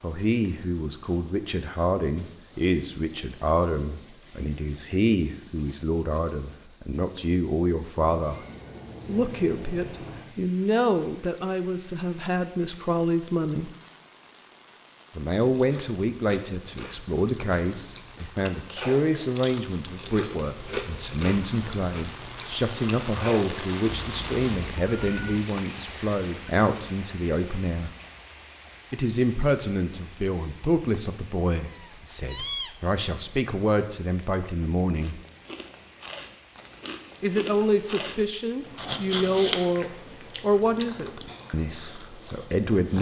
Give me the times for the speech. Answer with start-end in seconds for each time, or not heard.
0.0-8.4, 9.1-13.7, 15.2-27.9, 28.9-35.2, 37.2-42.9.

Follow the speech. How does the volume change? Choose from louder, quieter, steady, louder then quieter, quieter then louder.
steady.